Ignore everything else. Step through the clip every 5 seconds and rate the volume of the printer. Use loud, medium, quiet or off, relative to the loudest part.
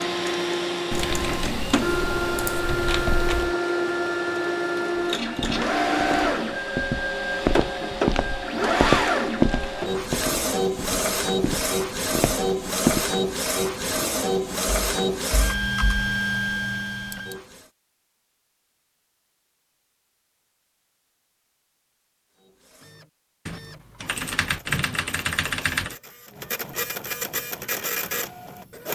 loud, loud, loud, loud, quiet, medium.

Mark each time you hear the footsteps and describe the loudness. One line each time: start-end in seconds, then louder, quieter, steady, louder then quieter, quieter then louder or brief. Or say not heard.
5.2-13.1 louder then quieter.